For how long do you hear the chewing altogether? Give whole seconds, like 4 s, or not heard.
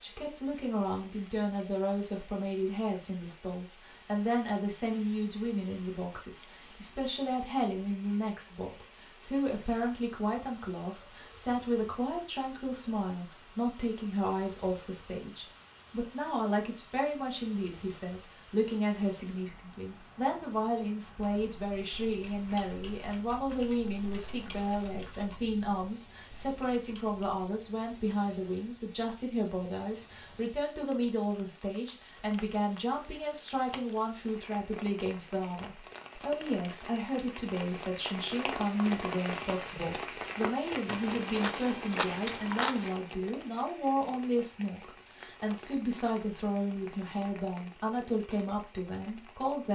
2 s.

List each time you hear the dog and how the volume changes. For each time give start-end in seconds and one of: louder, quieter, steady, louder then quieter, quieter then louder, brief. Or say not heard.
not heard.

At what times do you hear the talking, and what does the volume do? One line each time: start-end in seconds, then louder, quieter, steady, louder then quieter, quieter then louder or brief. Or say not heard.
0.0-49.7 steady.